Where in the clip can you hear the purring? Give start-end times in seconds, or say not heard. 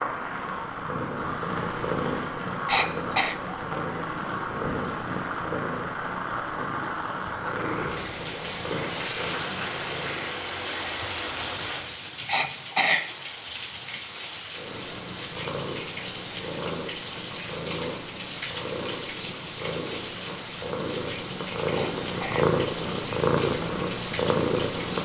0.0-10.3, 14.5-25.0.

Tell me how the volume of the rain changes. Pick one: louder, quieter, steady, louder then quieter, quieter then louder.
steady.